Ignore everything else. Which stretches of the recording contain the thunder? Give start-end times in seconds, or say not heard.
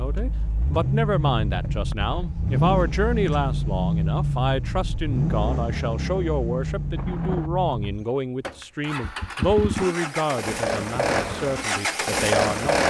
7.0-7.5.